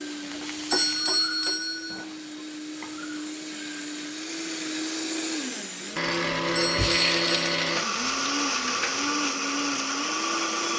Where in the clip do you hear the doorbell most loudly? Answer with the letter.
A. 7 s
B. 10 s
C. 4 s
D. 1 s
D.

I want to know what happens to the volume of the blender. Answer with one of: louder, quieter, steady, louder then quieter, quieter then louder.
louder.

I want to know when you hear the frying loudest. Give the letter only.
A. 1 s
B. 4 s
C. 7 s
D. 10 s
C.